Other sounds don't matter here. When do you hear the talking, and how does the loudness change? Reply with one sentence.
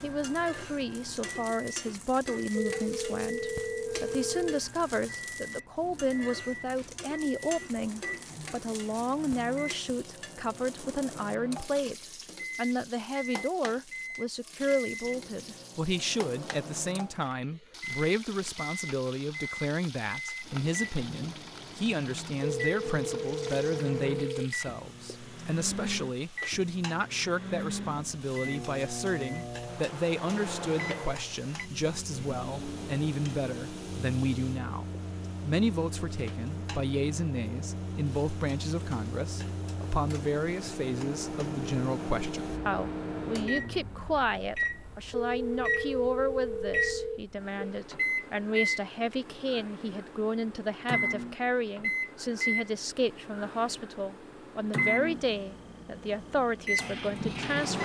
You can hear the talking from 0.0 to 57.7 s, at a steady volume.